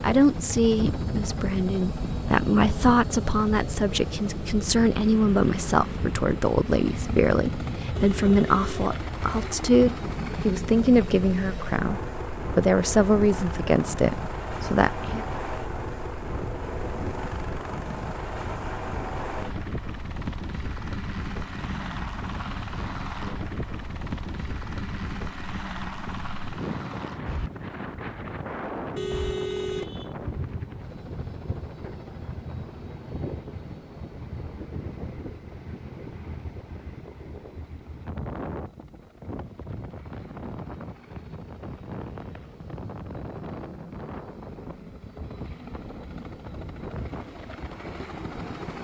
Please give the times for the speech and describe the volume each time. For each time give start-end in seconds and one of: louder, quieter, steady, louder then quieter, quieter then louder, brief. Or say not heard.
0.0-15.2 steady.